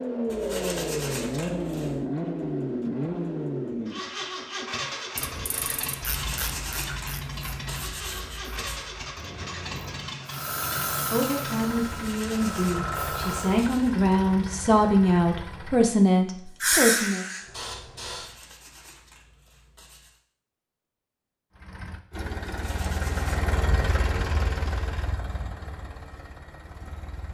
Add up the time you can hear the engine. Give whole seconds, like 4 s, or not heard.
22 s.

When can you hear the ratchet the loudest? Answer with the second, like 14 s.
6 s.